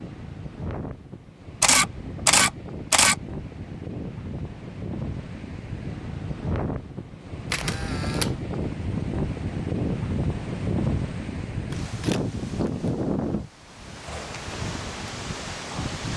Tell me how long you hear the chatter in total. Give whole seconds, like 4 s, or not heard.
not heard.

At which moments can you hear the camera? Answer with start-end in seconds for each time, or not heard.
1.6-3.1, 7.5-8.3, 11.7-12.9.